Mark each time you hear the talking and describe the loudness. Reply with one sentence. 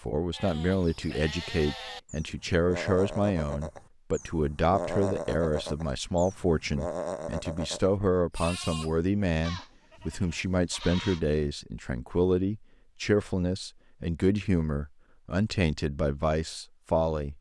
You can hear the talking from 0.0 to 17.3 s, at a steady volume.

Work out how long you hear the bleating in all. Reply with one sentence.
The bleating can be heard for 11 seconds in total.